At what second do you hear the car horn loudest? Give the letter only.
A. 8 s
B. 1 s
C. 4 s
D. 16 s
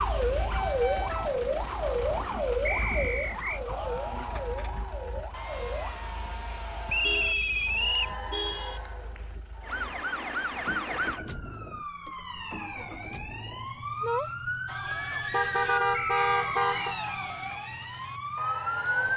D.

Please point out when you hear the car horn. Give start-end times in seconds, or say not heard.
0.4-2.2, 7.0-8.8, 15.3-16.9.